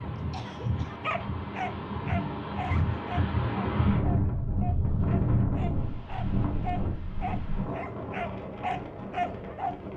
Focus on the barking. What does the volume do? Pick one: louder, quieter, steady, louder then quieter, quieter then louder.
quieter then louder.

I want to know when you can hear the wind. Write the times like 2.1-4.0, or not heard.
0.0-9.9.